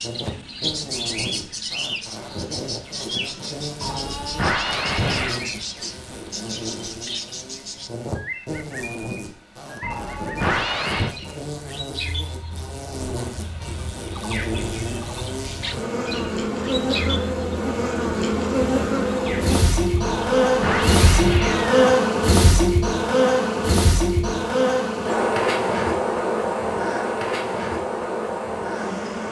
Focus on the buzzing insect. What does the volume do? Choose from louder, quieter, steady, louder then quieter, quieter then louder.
louder.